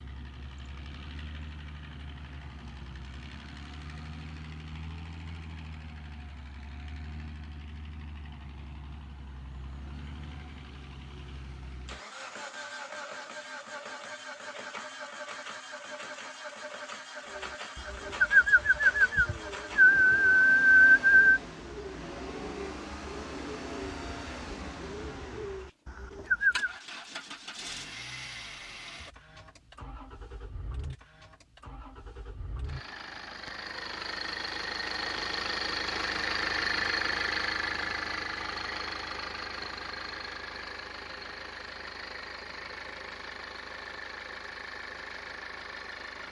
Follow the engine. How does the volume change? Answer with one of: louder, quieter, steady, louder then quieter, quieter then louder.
louder.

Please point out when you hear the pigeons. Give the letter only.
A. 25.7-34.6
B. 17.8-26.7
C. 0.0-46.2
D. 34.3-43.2
B.